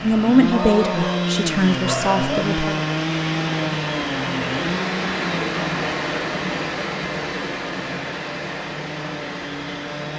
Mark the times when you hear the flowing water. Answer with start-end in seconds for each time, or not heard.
0.0-10.1.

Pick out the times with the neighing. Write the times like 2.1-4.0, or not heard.
not heard.